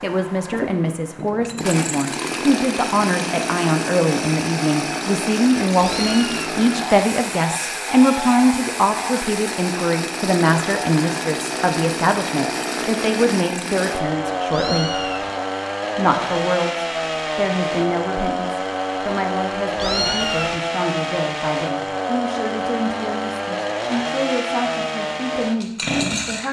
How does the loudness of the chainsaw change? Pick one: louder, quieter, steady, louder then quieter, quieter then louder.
steady.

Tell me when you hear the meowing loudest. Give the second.
20 s.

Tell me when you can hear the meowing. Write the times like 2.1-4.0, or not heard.
5.8-6.6, 14.5-15.3, 19.8-20.6.